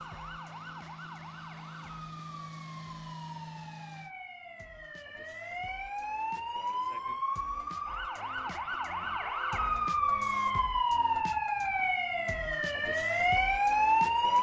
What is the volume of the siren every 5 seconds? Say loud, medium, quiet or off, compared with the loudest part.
quiet, medium, loud.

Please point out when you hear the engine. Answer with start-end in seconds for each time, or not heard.
0.0-4.2.